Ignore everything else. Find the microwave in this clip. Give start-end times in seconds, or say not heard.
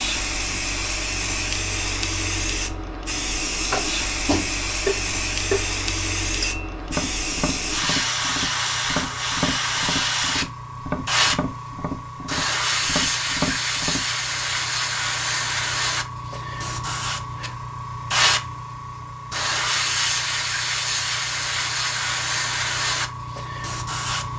not heard.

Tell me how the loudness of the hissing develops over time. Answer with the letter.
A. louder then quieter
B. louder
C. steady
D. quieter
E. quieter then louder
C.